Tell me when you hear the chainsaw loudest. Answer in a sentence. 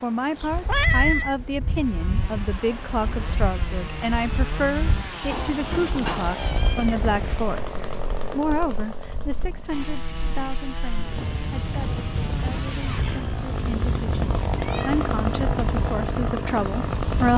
The volume of the chainsaw peaks at 15 seconds.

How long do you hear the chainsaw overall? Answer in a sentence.
You can hear the chainsaw for 16 seconds altogether.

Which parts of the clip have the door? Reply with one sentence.
You can hear the door from 5.3 to 6.3 s.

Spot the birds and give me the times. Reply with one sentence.
The birds can't be heard in this clip.